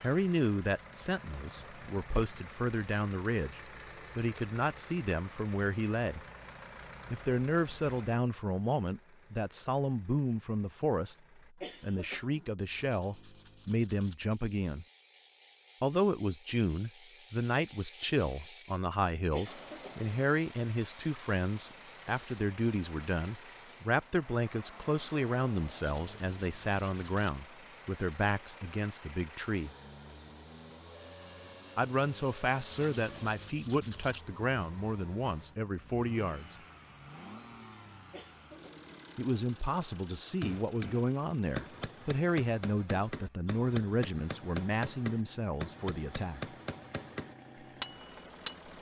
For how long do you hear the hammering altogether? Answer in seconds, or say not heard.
8 s.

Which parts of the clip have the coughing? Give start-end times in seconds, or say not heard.
11.6-12.5, 19.3-20.0, 38.1-38.9.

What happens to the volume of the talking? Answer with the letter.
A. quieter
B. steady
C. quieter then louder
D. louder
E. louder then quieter
B.